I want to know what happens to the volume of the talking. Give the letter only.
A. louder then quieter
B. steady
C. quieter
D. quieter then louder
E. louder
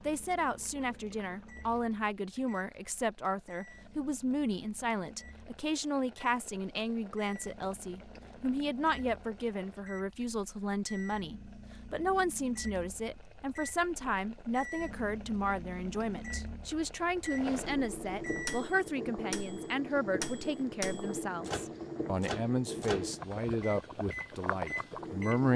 B.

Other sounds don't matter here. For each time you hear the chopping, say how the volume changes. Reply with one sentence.
The chopping can't be heard in this clip.